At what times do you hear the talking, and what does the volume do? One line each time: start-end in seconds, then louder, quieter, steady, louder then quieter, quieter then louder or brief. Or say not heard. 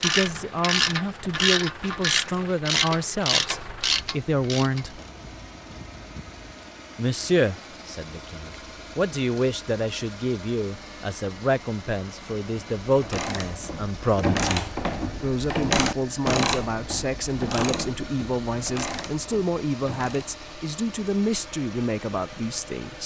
0.0-5.0 steady
7.0-23.0 steady.